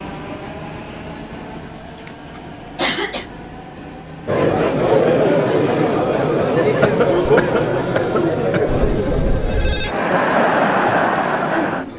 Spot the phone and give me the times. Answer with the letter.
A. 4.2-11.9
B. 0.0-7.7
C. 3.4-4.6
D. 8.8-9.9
D.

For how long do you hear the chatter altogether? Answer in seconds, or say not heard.
8 s.